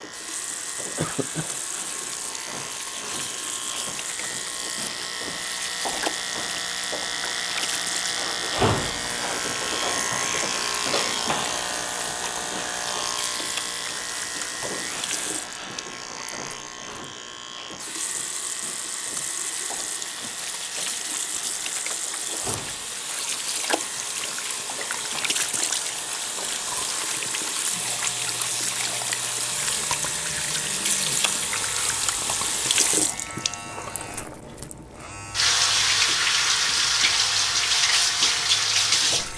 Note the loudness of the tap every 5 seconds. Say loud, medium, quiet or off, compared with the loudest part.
quiet, quiet, quiet, quiet, medium, medium, medium, loud.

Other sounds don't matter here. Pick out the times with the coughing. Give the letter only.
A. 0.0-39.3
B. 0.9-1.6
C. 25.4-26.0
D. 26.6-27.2
B.